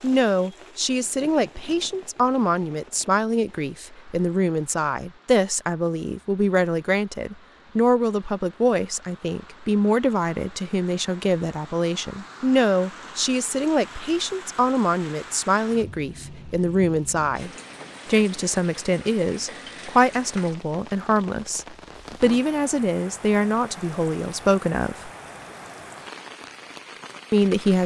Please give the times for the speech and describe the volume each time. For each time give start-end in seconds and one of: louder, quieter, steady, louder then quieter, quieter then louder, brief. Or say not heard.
0.0-25.1 steady
27.3-27.8 brief.